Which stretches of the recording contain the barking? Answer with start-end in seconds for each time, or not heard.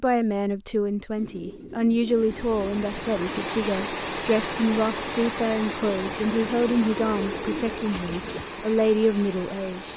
not heard.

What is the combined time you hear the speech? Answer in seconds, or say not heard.
10 s.